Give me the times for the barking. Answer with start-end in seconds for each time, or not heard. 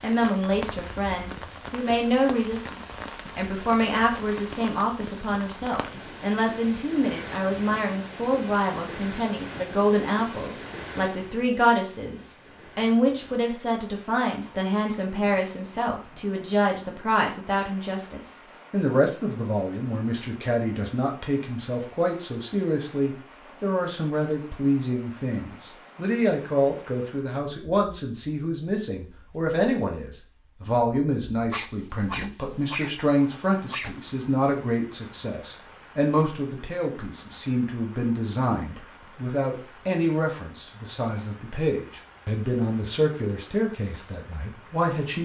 31.5-34.0.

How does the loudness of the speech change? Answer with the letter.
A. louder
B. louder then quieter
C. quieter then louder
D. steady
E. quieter
D.